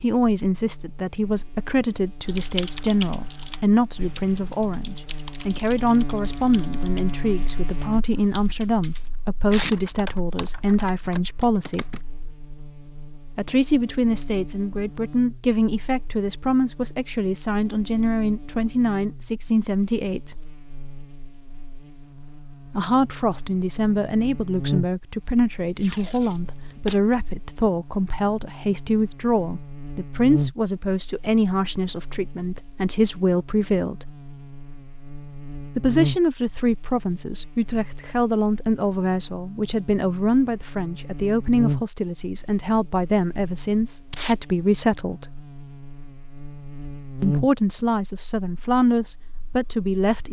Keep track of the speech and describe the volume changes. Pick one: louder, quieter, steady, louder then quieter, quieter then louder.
steady.